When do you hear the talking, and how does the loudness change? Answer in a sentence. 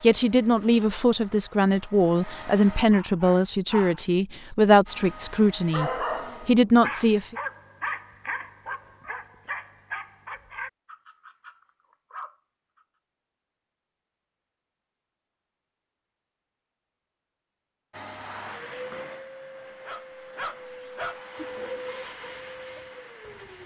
The talking can be heard from 0.0 to 7.3 s, at a steady volume.